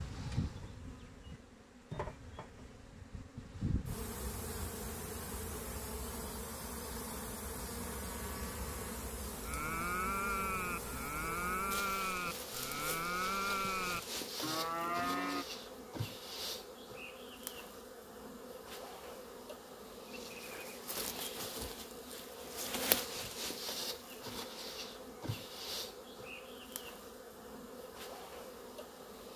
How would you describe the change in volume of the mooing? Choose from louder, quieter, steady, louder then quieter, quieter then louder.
louder.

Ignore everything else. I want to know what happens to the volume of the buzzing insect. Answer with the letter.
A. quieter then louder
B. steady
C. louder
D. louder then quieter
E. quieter
B.